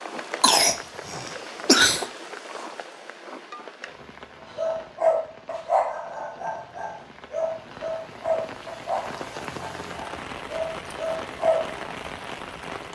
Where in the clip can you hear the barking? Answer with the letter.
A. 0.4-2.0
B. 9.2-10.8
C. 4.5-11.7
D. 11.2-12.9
C.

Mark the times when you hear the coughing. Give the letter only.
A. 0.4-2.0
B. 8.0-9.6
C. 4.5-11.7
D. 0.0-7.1
A.